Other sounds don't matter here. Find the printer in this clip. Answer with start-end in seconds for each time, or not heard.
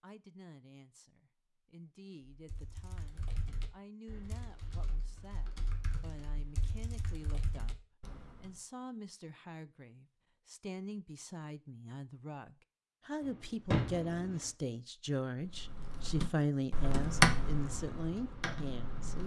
not heard.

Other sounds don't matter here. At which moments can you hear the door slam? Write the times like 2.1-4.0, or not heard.
13.2-14.5.